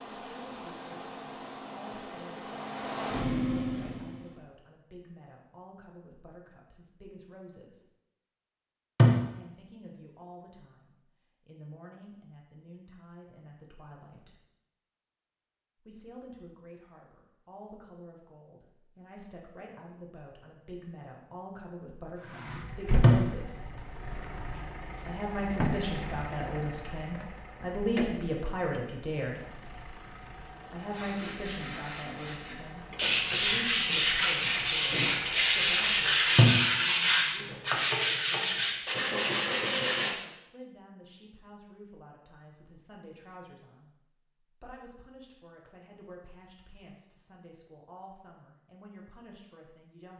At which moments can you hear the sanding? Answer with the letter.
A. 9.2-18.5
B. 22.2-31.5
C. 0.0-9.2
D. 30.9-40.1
D.